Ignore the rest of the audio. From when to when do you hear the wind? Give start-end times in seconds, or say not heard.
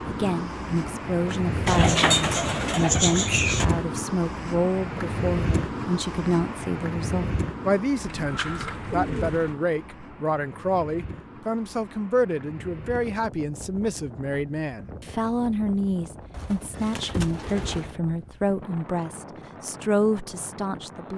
0.0-21.1.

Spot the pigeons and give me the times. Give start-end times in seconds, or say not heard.
1.6-3.6, 8.0-9.6, 16.3-17.9.